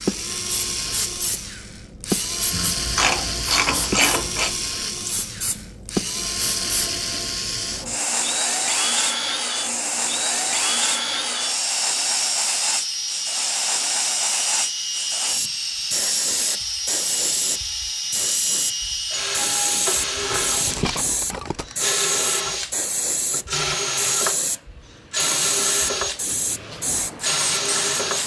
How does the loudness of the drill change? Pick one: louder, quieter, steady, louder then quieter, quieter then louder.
steady.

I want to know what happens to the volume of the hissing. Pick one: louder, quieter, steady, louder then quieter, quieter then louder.
louder.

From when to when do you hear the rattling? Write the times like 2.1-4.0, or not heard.
20.1-21.8.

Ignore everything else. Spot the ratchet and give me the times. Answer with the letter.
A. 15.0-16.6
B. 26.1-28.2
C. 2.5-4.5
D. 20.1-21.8
C.